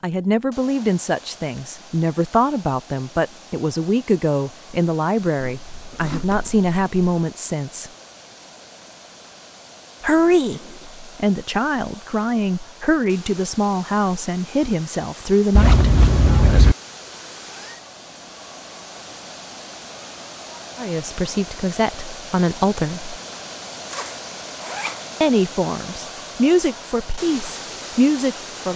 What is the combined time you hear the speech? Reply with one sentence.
You can hear the speech for 20 seconds altogether.